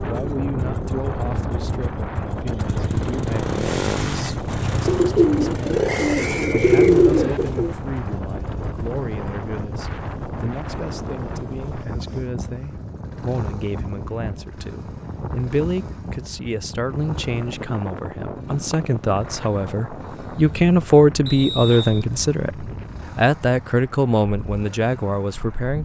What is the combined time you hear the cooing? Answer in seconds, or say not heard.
3 s.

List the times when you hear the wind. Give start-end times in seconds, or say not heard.
0.0-25.8.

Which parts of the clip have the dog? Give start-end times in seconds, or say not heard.
not heard.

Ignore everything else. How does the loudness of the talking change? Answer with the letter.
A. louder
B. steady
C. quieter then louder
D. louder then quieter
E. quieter
A.